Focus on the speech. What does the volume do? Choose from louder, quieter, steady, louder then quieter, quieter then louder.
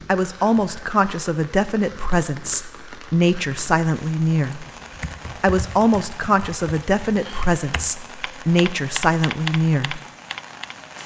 steady.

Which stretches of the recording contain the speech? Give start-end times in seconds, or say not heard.
0.1-4.7, 5.3-10.0.